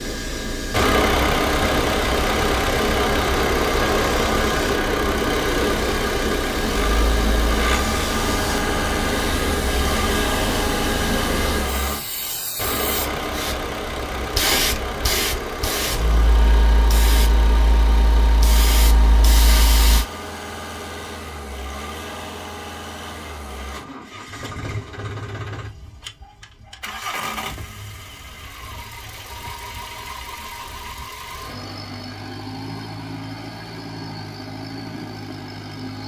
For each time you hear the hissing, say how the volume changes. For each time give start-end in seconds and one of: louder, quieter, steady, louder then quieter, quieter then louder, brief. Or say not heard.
0.0-20.1 steady.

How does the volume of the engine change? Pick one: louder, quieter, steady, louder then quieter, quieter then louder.
quieter.